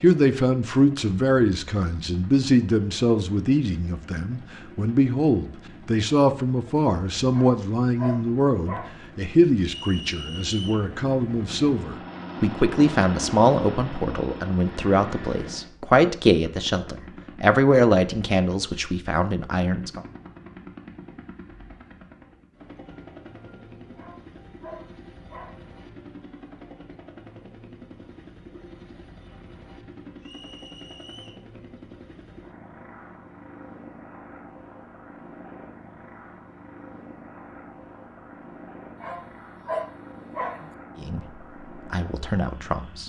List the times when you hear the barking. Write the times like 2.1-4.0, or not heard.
7.3-9.0, 23.9-25.6, 39.0-40.7.